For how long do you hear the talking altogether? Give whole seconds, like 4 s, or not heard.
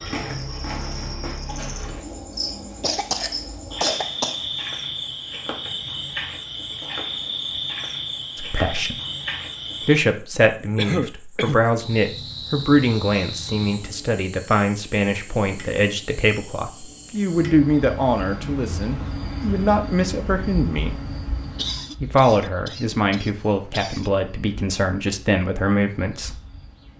16 s.